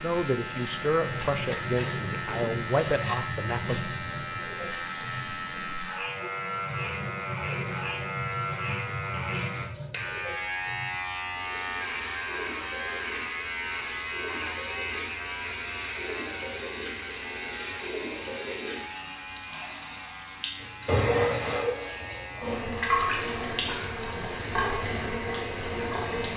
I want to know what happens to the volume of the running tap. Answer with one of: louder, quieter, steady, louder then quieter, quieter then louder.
louder.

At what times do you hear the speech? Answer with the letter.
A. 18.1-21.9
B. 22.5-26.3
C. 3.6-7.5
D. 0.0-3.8
D.